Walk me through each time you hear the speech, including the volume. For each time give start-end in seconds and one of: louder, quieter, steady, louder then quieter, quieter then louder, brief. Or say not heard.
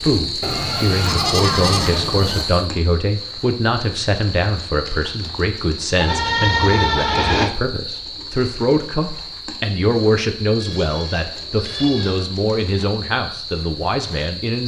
0.0-14.6 steady.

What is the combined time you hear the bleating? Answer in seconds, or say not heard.
5 s.